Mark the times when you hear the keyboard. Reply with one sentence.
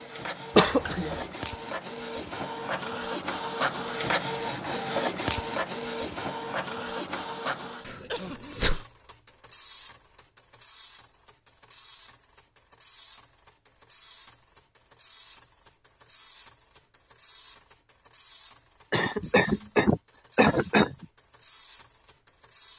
You can't hear the keyboard here.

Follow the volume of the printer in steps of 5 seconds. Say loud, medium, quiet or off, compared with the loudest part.
loud, loud, quiet, quiet, quiet.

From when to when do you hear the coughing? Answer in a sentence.
You can hear the coughing from 0.6 to 1.2 s, from 7.8 to 8.8 s and from 18.9 to 21.1 s.